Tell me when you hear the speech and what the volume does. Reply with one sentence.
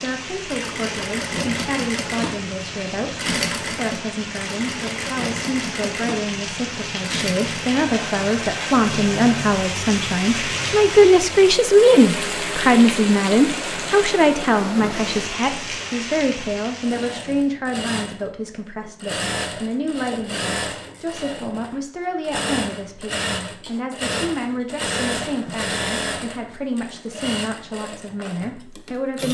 You can hear the speech from 0.0 to 29.2 s, getting louder then quieter.